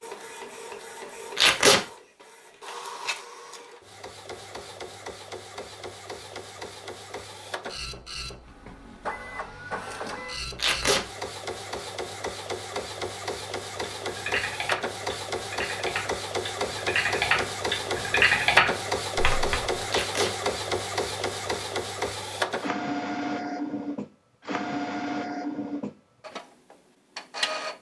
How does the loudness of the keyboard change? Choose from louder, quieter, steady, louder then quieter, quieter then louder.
louder.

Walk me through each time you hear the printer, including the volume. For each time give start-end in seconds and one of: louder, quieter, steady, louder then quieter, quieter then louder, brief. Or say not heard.
0.0-27.7 louder.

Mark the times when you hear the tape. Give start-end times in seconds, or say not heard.
1.4-1.8, 10.6-11.0, 19.9-20.3.